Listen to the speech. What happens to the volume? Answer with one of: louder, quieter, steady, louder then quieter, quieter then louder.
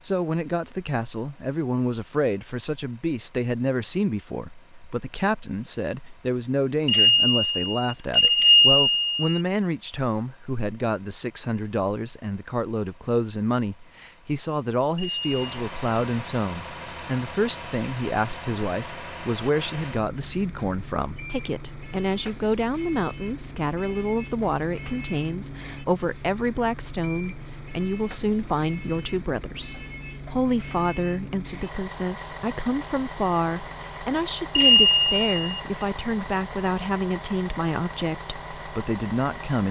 steady.